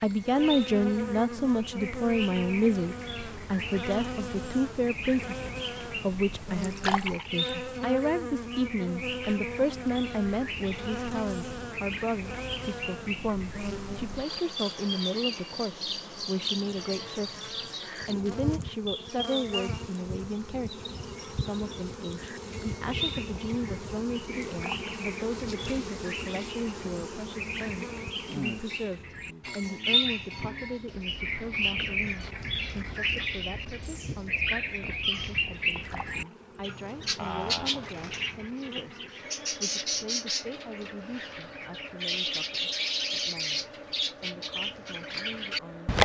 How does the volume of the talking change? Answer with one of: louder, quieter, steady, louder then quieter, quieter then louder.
quieter.